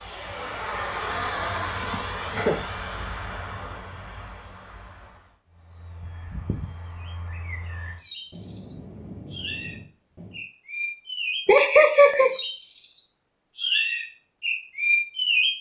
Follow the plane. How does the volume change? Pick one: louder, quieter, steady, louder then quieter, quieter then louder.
quieter then louder.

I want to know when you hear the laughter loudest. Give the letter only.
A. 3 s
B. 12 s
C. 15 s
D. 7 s
B.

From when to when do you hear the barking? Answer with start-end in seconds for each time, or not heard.
not heard.